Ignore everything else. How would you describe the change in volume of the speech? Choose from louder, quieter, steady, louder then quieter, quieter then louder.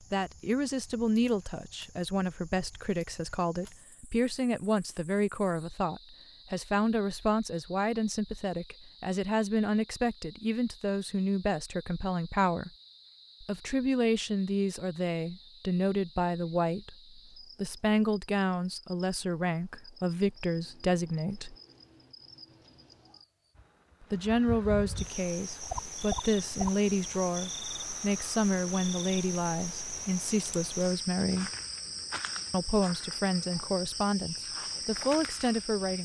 steady.